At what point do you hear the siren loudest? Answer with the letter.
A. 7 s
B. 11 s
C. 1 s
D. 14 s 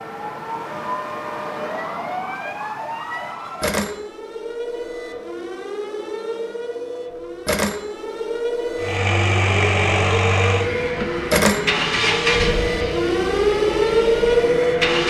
D.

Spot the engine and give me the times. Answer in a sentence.
You can hear the engine from 8.8 to 15.0 s.